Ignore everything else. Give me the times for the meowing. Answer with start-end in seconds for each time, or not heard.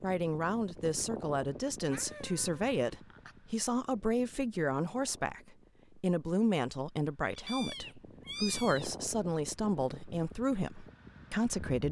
1.9-3.4, 7.3-8.9.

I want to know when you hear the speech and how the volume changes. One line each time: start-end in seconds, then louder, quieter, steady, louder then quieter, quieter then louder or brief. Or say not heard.
0.0-11.8 steady.